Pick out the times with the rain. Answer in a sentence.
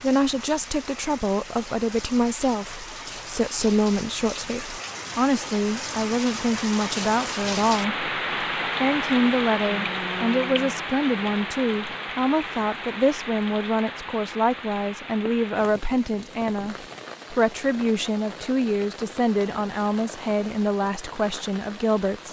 The rain can be heard from 0.0 to 22.2 s.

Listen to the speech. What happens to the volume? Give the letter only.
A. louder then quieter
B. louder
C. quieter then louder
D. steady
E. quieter
D.